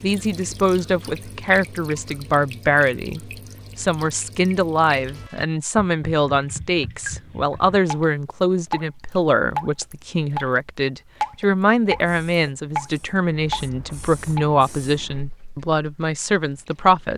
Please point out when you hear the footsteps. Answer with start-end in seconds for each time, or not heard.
not heard.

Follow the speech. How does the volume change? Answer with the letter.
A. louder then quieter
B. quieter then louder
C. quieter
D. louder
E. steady
E.